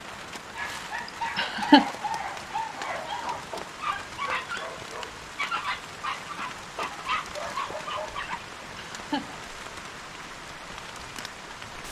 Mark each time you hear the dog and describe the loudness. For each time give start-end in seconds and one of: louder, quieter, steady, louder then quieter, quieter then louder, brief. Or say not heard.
0.6-8.4 steady.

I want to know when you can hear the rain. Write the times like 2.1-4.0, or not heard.
0.0-11.8.